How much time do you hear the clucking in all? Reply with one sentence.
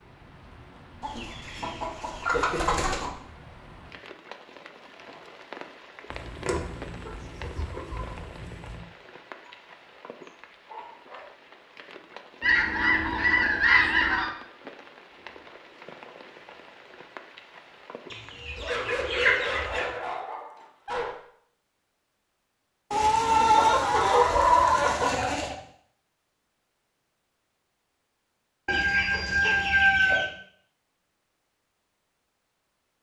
The clucking can be heard for 13 seconds in total.